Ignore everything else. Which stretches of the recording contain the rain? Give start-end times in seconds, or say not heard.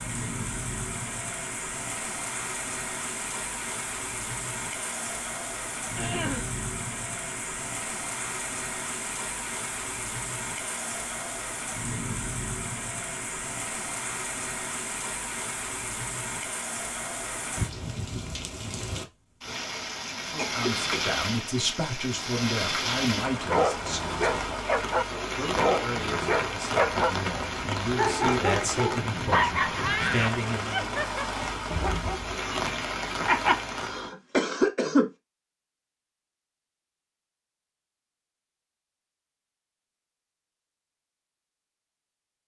0.0-34.1.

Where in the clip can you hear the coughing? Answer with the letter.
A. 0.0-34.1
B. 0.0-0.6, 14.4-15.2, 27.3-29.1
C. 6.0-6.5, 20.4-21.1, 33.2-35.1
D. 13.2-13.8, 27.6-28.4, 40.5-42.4
C.